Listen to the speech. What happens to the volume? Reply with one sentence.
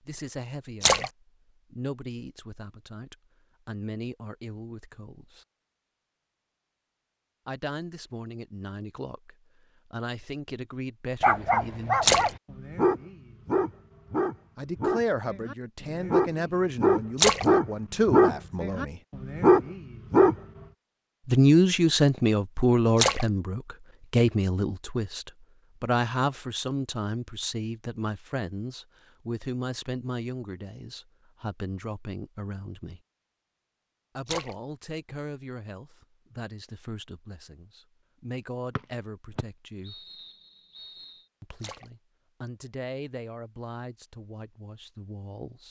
The loudness of the speech goes up, then down.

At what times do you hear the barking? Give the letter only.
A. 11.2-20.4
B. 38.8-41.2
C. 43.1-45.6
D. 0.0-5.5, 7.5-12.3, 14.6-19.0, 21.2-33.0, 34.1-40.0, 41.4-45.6
A.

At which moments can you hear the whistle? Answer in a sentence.
You can hear the whistle from 38.8 to 41.2 s.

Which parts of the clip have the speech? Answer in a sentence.
The speech can be heard from 0.0 to 5.5 s, from 7.5 to 12.3 s, from 14.6 to 19.0 s, from 21.2 to 33.0 s, from 34.1 to 40.0 s and from 41.4 to 45.6 s.